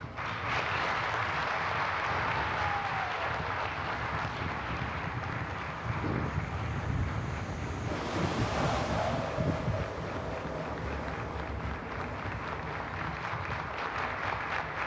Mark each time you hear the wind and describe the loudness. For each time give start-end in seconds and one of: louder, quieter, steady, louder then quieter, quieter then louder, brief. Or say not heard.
0.0-14.8 louder then quieter.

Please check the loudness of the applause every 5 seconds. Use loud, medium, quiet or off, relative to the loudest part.
loud, medium, medium.